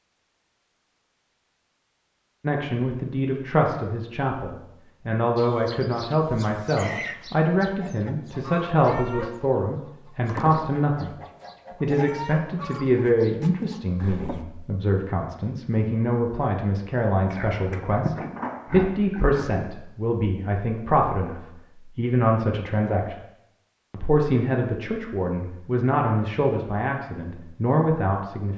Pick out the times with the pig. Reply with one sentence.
The pig can be heard from 17.3 to 19.6 s.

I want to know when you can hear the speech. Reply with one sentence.
The speech can be heard from 2.4 to 11.1 s, from 11.8 to 23.1 s and from 23.9 to 28.5 s.